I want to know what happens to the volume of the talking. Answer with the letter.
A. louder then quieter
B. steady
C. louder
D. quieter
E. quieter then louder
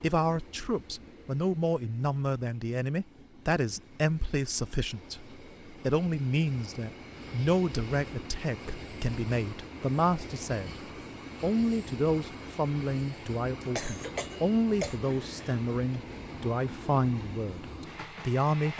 B.